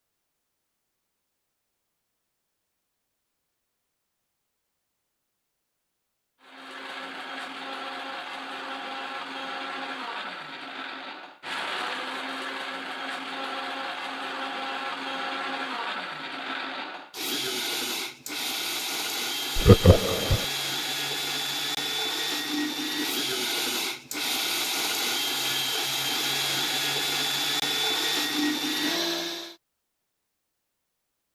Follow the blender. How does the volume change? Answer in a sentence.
The loudness of the blender goes up.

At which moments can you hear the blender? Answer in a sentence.
The blender can be heard from 6.4 to 29.6 s.